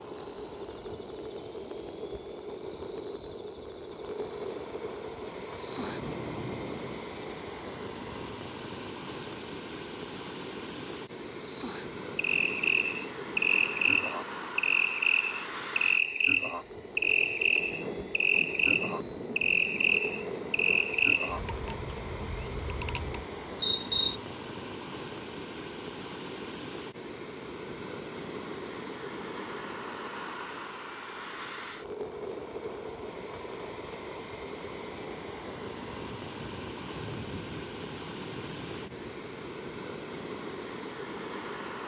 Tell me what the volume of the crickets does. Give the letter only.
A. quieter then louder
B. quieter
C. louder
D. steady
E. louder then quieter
D.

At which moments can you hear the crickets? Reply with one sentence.
The crickets can be heard from 0.0 to 24.2 s.